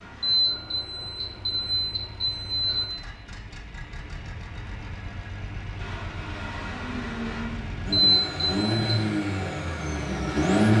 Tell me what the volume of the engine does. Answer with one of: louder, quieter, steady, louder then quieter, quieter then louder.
louder.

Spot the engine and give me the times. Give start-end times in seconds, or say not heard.
0.0-10.7.